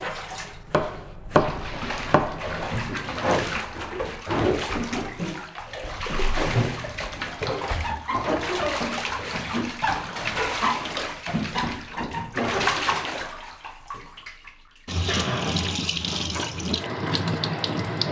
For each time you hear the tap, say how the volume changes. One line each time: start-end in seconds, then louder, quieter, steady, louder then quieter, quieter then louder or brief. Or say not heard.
0.0-18.0 steady.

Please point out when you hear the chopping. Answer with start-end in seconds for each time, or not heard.
0.0-2.8.